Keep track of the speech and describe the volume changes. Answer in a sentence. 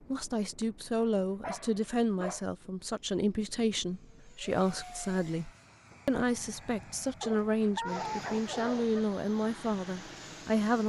The volume of the speech stays about the same.